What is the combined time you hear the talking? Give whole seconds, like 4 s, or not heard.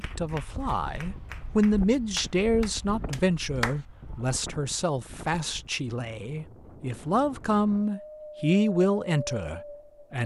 10 s.